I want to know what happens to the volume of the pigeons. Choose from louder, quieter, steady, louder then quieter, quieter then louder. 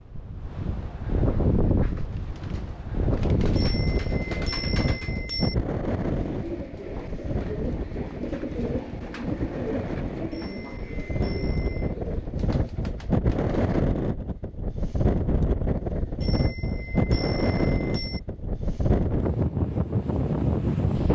louder then quieter.